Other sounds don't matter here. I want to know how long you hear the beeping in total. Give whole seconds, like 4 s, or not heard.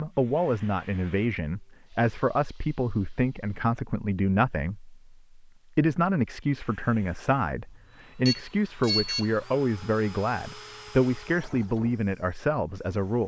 2 s.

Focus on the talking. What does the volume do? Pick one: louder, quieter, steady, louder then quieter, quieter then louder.
steady.